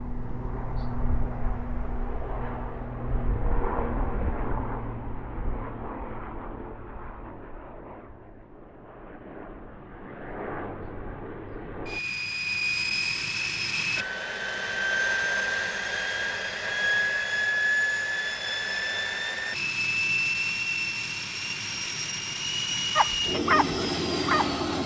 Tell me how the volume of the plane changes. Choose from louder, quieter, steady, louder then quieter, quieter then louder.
quieter then louder.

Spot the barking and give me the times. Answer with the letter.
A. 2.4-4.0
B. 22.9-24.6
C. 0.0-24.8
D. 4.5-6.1
B.